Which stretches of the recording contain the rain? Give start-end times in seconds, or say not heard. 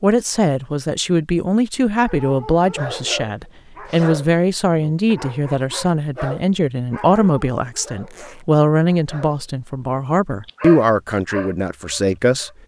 not heard.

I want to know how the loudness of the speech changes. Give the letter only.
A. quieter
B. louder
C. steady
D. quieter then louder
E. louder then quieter
C.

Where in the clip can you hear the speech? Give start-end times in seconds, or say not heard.
0.0-12.5.